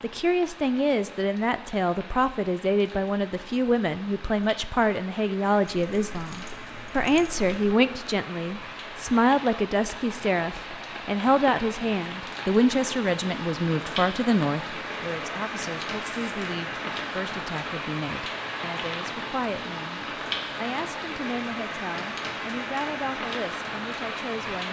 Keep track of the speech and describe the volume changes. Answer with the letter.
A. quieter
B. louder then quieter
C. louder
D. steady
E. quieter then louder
A.